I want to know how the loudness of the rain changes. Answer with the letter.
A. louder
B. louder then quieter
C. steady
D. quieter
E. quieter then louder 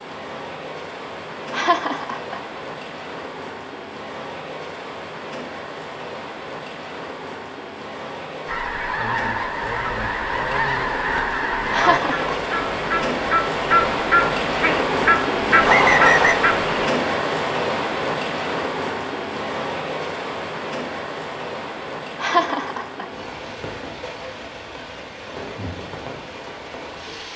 B.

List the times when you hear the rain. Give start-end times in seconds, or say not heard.
0.0-27.3.